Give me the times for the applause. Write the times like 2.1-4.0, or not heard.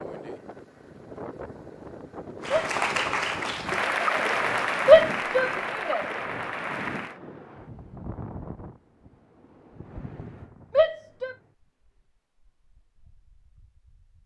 2.4-7.2.